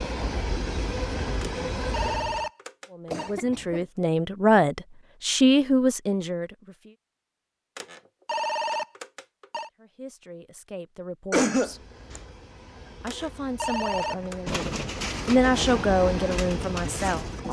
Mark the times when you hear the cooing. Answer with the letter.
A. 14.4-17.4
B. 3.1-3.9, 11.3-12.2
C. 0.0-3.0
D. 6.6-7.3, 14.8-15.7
A.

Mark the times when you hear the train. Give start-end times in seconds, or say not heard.
0.0-2.5, 11.5-17.4.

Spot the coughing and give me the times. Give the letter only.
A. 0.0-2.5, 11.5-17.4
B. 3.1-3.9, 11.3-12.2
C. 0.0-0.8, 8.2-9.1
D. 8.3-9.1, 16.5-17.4
B.